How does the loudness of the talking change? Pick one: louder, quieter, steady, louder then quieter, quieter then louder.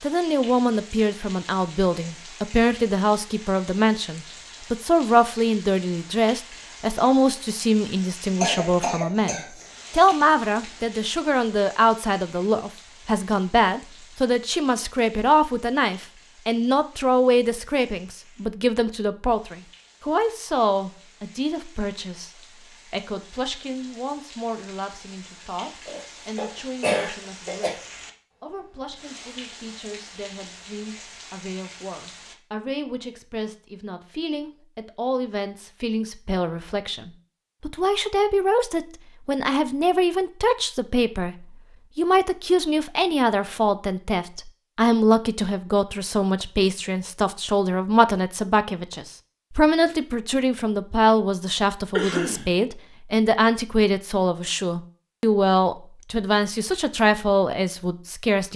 quieter then louder.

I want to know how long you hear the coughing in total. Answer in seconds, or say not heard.
4 s.